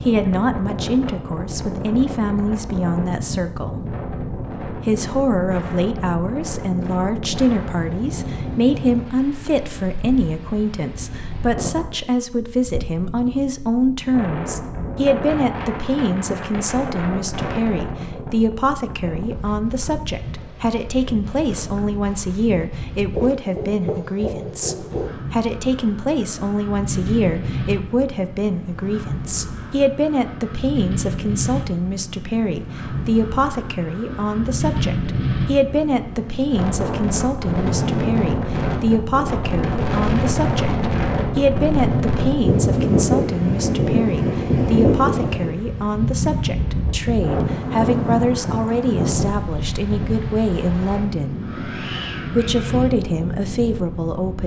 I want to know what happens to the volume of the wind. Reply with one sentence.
The volume of the wind goes up.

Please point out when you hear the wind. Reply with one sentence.
The wind can be heard from 0.0 to 54.4 s.